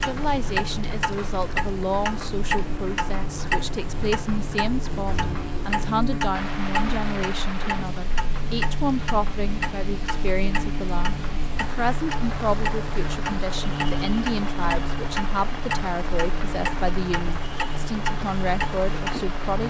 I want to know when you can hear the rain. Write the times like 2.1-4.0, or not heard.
0.0-19.6.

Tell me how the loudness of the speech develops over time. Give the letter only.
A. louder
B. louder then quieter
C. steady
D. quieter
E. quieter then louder
C.